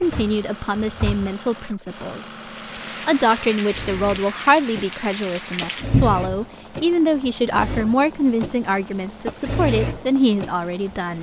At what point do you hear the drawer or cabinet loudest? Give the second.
6 s.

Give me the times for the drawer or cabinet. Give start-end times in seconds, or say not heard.
0.0-1.4, 5.9-6.5.